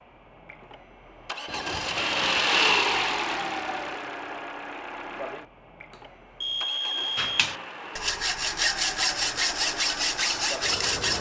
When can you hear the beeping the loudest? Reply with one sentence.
The volume of the beeping peaks at 7 seconds.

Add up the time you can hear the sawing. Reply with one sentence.
You can hear the sawing for 4 seconds altogether.